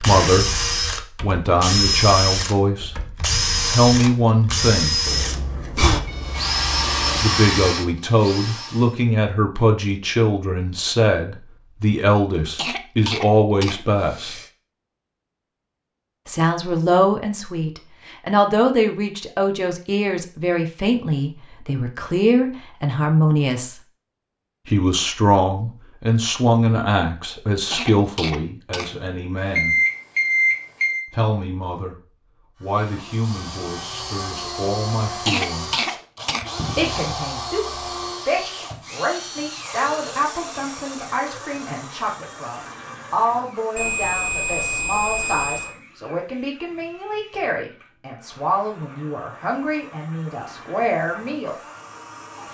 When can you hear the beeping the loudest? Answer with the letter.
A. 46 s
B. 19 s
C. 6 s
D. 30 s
D.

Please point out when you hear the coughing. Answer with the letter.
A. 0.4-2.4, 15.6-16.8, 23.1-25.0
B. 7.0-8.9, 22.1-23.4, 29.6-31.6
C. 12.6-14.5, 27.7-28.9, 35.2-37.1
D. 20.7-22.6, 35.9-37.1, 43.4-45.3
C.